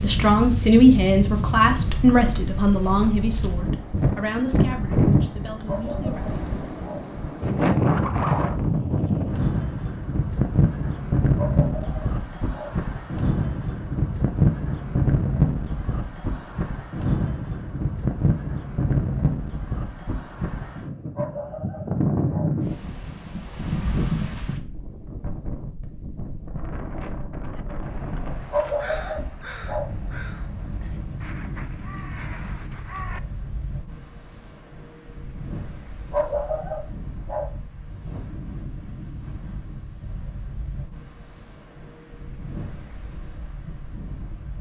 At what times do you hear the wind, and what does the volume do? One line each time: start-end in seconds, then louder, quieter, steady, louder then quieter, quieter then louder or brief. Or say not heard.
0.0-44.5 quieter.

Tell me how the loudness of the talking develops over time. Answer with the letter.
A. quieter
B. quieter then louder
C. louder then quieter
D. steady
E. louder
A.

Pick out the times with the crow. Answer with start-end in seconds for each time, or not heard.
27.6-33.2.